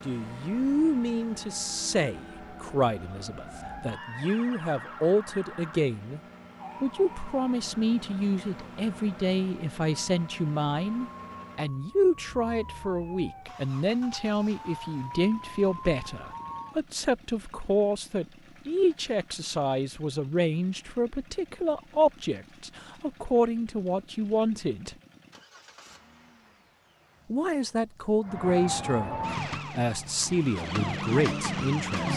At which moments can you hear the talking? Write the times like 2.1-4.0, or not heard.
0.1-6.2, 6.8-24.9, 27.3-32.1.